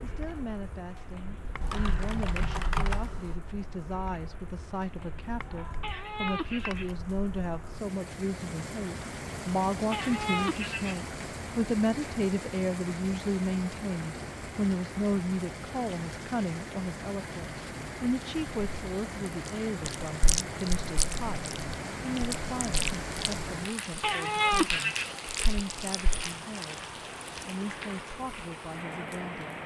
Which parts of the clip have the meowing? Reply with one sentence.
The meowing can be heard from 5.8 to 7.0 s, from 9.9 to 11.0 s and from 24.0 to 25.1 s.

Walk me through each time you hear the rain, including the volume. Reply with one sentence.
You can hear the rain from 0.0 to 29.6 s, getting louder.